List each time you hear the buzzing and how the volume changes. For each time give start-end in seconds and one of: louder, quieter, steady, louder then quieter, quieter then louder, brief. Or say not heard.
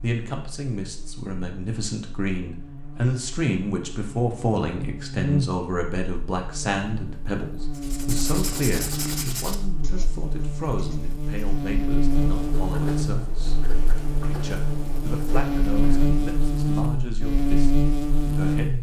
0.0-18.7 louder.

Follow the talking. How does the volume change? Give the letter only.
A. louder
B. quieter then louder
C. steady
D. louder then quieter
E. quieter
E.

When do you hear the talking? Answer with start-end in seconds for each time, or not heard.
0.0-18.7.